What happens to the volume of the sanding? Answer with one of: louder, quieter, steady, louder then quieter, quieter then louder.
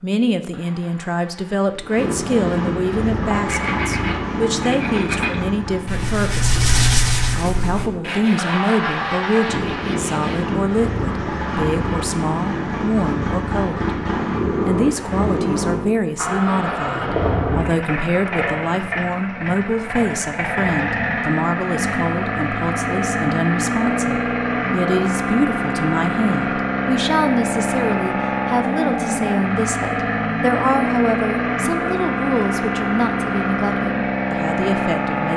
louder then quieter.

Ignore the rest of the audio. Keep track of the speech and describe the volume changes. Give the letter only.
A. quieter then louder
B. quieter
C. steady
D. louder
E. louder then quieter
C.